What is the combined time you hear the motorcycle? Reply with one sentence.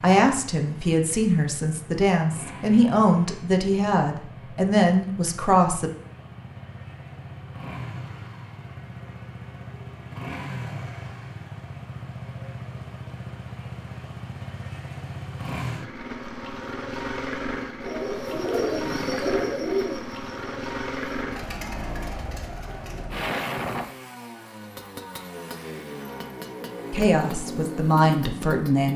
You can hear the motorcycle for 29 seconds altogether.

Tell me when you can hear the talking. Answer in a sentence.
The talking can be heard from 0.0 to 5.9 s and from 26.9 to 28.9 s.